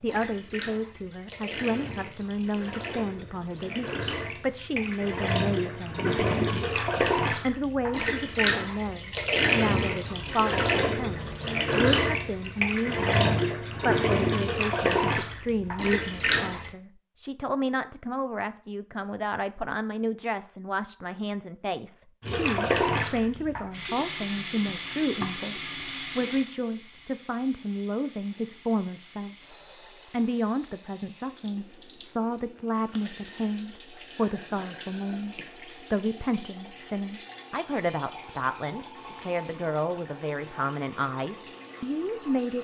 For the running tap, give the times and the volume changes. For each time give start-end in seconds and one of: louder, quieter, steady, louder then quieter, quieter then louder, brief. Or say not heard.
0.0-16.7 louder
22.2-42.5 quieter.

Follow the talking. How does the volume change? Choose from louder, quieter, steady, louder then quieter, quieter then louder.
steady.